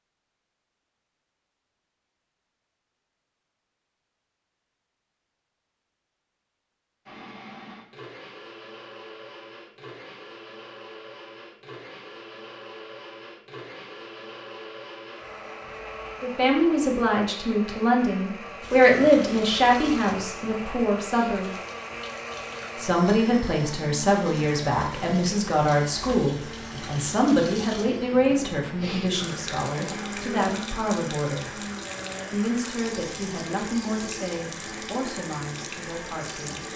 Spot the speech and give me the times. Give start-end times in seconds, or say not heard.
16.2-21.5, 22.8-31.6, 32.3-36.7.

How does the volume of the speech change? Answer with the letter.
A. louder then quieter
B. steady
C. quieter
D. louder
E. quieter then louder
C.